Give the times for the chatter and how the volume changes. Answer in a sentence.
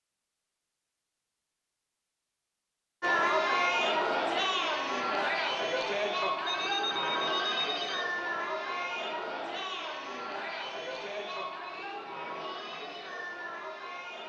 The chatter can be heard from 3.0 to 14.2 s, getting quieter.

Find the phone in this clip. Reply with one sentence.
The phone can be heard from 6.4 to 8.1 s.